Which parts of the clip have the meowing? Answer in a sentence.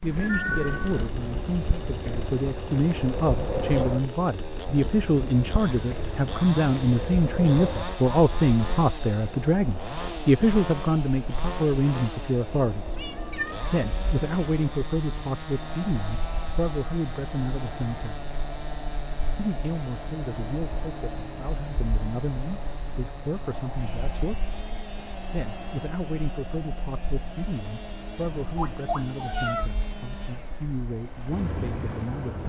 The meowing can be heard from 0.0 to 1.1 s, from 12.9 to 13.8 s and from 28.6 to 29.7 s.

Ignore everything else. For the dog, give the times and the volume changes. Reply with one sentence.
The dog can't be heard in this clip.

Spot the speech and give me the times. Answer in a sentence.
You can hear the speech from 0.0 to 13.0 s, from 13.7 to 18.2 s, from 19.4 to 24.5 s and from 25.3 to 32.4 s.